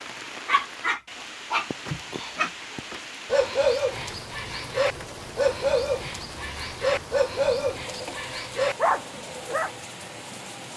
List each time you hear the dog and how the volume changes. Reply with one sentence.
You can hear the dog from 0.5 to 9.7 s, at a steady volume.